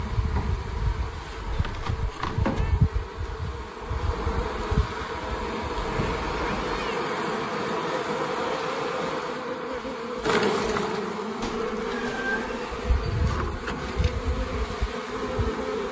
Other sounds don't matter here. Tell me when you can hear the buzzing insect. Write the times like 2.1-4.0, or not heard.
0.0-15.8.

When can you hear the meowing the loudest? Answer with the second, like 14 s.
12 s.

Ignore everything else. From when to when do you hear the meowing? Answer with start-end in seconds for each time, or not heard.
1.5-2.8, 5.7-7.0, 11.4-12.8.